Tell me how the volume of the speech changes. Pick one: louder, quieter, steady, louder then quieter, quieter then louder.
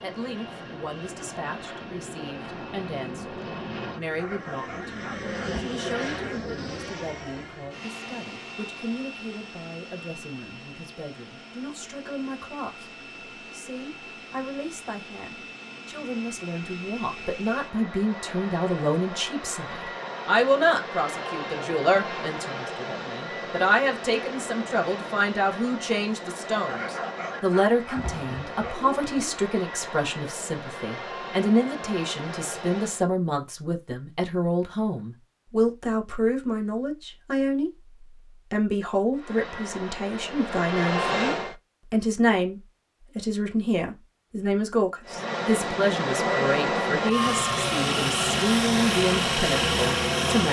louder.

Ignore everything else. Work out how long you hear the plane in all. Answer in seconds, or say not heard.
41 s.